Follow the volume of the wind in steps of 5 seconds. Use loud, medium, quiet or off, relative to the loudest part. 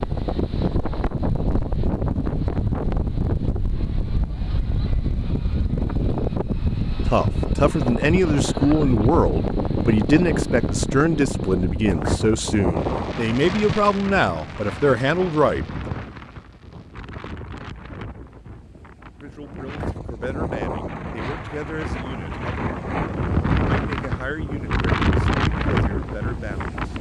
loud, loud, loud, quiet, loud, loud.